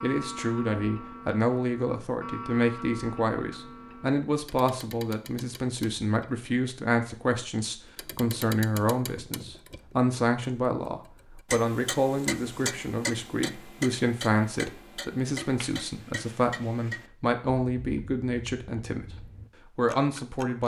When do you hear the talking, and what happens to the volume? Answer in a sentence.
The talking can be heard from 0.0 to 20.6 s, at a steady volume.